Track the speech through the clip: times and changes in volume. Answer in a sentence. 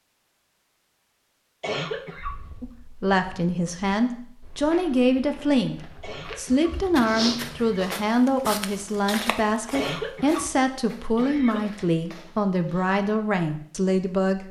You can hear the speech from 2.6 to 14.4 s, at a steady volume.